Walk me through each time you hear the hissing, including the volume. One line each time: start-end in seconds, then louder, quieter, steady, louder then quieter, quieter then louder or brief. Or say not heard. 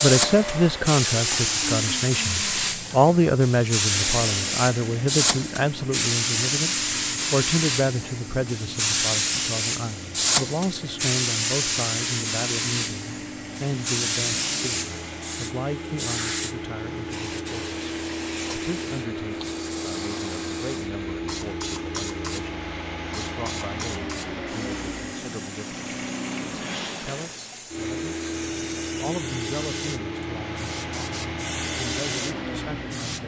0.0-33.2 quieter.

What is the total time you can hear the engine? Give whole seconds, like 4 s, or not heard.
33 s.